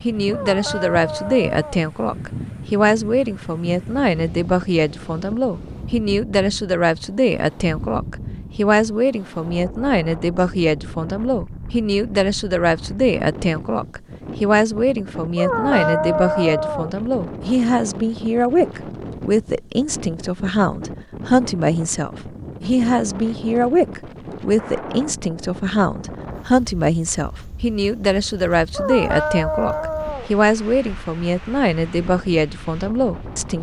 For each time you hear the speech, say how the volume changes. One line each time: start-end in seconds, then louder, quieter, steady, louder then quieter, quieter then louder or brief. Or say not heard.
0.0-33.5 steady.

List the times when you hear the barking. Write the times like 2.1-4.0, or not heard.
0.3-1.9, 15.3-16.9, 28.8-30.3.